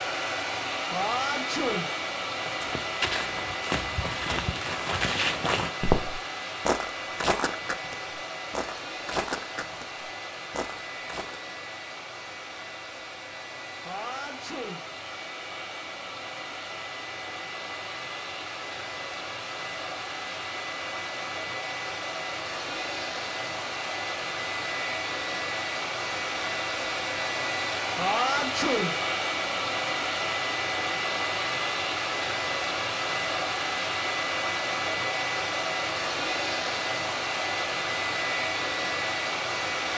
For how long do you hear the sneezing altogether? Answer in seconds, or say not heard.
3 s.